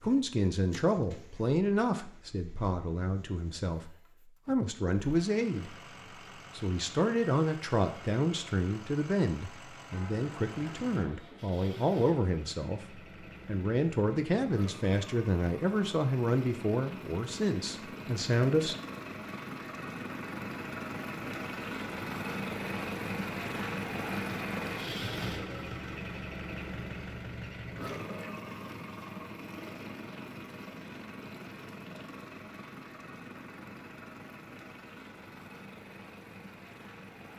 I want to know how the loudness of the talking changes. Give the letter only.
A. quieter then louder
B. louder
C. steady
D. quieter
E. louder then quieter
C.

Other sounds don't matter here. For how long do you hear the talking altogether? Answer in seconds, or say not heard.
18 s.